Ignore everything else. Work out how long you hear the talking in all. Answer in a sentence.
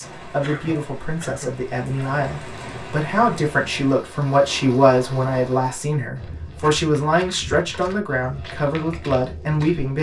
The talking can be heard for 10 seconds in total.